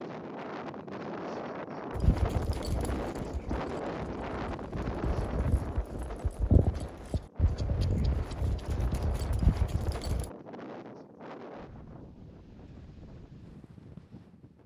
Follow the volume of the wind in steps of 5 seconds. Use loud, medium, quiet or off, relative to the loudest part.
loud, medium, medium.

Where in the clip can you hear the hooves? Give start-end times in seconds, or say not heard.
1.9-10.3.